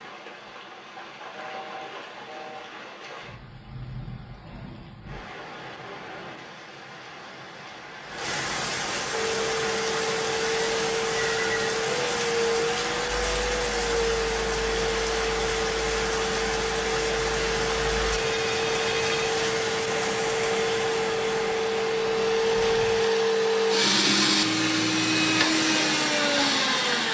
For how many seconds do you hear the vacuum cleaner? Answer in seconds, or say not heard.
18 s.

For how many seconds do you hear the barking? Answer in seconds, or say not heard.
not heard.